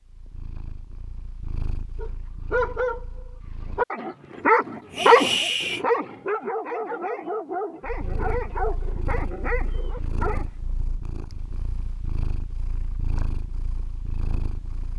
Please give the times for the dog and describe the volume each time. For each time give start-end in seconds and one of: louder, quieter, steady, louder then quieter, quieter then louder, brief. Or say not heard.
1.9-10.4 louder then quieter.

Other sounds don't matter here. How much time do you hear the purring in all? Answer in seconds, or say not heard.
11 s.